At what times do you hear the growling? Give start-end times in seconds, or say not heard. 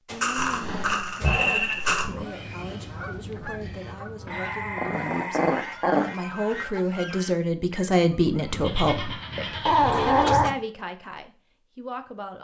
0.3-2.2, 4.2-6.2, 9.7-10.6.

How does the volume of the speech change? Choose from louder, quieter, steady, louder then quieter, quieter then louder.
louder then quieter.